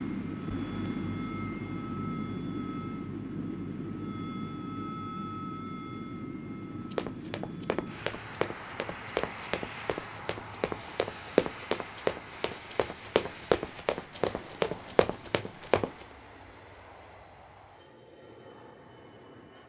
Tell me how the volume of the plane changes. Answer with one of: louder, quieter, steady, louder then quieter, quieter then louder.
quieter.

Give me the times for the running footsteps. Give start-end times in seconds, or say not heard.
6.9-16.1.